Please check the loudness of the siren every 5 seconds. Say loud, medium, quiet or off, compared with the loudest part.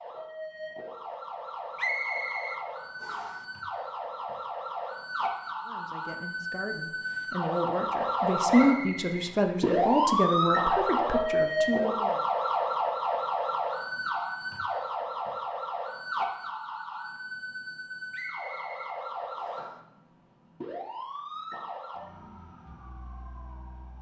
medium, loud, loud, medium, quiet.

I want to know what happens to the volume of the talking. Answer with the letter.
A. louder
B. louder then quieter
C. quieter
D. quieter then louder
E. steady
B.